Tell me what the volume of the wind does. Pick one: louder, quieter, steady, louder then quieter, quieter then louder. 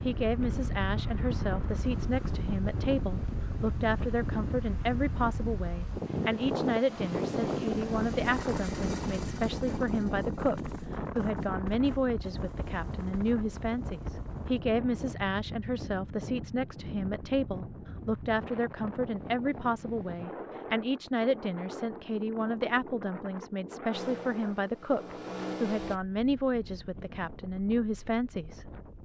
quieter.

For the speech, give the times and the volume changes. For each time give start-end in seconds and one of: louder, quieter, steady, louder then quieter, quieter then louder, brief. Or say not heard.
0.0-28.8 steady.